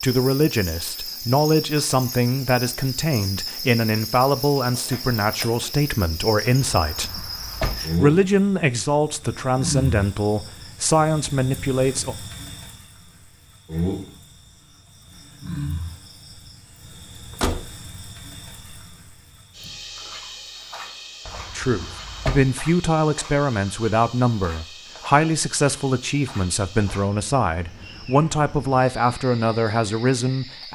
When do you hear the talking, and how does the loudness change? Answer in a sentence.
The talking can be heard from 0.0 to 12.2 s, at a steady volume; and from 21.6 to 30.7 s, at a steady volume.